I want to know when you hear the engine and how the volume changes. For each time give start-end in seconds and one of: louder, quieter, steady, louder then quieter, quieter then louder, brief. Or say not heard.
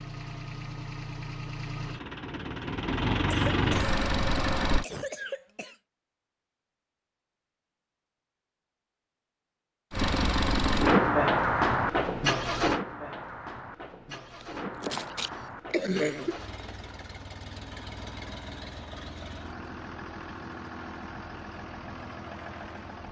0.0-4.8 louder
9.9-23.0 quieter.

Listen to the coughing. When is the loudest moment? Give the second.
16 s.